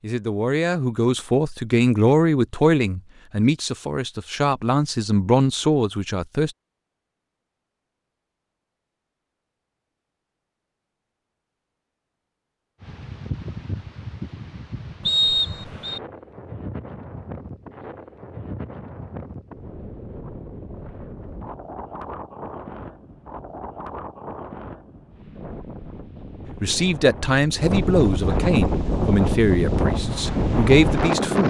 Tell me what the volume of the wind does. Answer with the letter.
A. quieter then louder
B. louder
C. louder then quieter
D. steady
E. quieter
B.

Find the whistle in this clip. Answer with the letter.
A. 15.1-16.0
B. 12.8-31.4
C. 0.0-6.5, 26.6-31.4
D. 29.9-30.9
A.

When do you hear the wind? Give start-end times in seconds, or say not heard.
12.8-31.4.